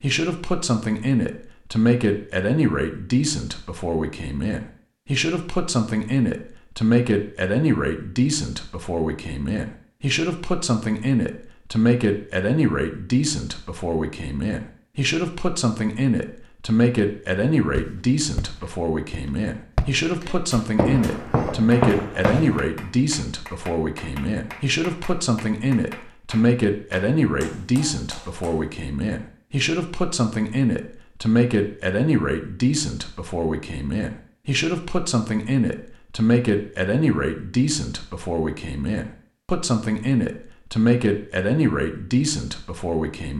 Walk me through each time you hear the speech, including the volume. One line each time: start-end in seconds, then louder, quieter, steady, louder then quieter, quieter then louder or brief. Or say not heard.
0.0-43.3 steady.